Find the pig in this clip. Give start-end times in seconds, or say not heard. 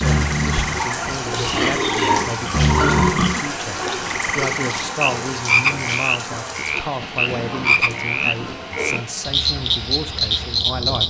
0.8-3.5, 7.0-9.0.